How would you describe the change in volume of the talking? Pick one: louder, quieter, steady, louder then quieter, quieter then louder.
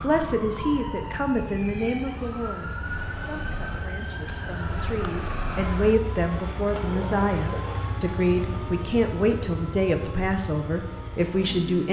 quieter then louder.